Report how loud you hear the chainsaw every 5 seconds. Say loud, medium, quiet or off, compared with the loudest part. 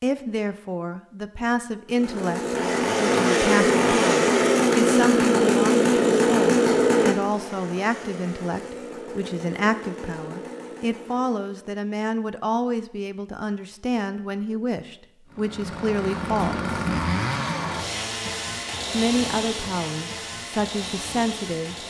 loud, loud, quiet, medium, quiet.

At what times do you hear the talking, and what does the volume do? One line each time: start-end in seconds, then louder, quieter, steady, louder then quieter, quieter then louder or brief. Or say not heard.
0.0-16.6 steady
18.9-21.8 brief.